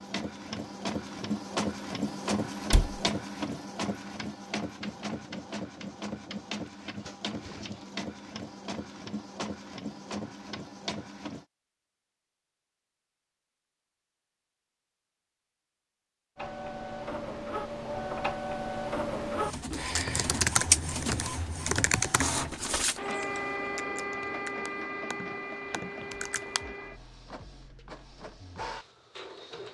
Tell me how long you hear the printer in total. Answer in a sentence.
The printer can be heard for 25 seconds in total.